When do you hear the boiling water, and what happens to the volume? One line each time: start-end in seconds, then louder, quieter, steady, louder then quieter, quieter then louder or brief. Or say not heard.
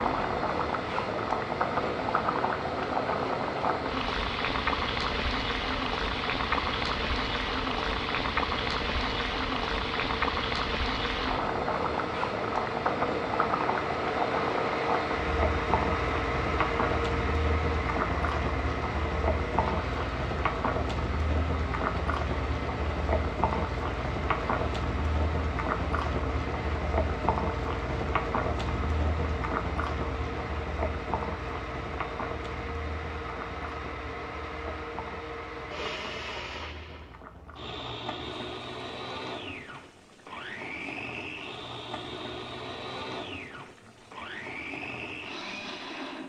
0.0-46.2 quieter.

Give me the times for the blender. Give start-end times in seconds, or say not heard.
0.0-46.2.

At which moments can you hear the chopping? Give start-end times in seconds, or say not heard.
not heard.